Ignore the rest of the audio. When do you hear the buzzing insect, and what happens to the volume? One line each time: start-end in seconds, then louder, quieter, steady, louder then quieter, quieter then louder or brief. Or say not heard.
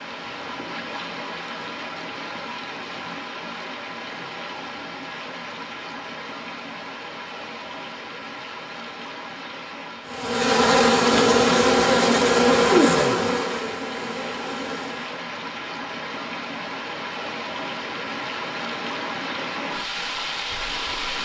10.1-15.2 quieter.